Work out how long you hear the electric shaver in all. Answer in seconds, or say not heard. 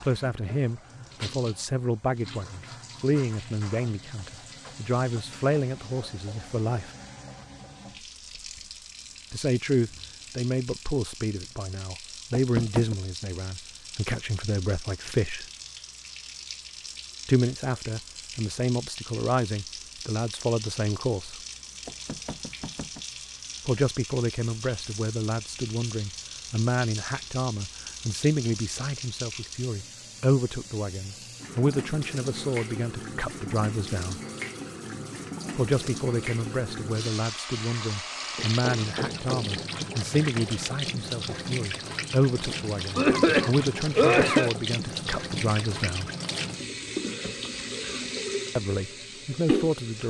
not heard.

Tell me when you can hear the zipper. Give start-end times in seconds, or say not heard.
not heard.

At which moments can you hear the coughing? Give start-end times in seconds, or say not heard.
43.0-44.5.